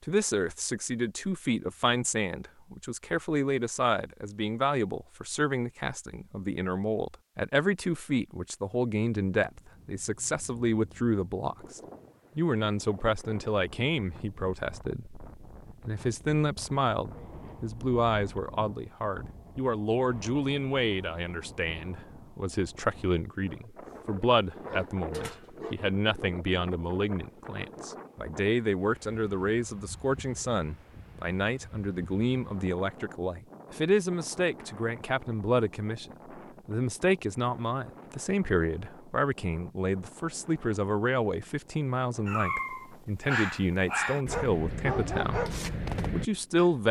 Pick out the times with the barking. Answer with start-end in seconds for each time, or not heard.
23.9-25.8, 42.2-46.6.